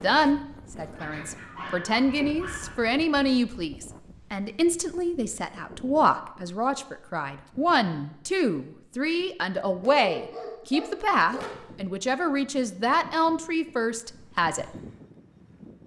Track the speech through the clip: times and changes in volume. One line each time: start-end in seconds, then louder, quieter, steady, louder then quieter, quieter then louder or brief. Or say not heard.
0.0-14.7 steady.